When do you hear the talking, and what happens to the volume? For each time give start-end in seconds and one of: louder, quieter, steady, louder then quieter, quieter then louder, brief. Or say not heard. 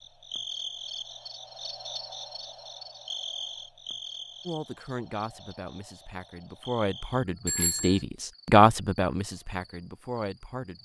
4.5-10.7 louder then quieter.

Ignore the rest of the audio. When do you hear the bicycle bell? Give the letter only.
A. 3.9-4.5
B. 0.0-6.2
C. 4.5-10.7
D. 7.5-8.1
D.